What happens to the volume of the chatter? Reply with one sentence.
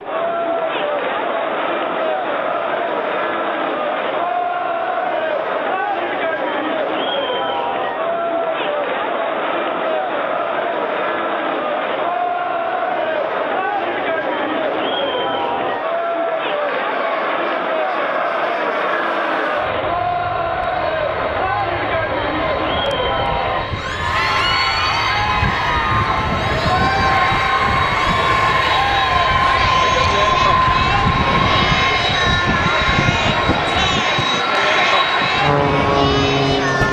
The loudness of the chatter stays about the same.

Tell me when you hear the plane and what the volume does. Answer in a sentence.
You can hear the plane from 0.0 to 36.8 s, getting louder.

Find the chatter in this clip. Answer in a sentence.
The chatter can be heard from 0.0 to 36.8 s.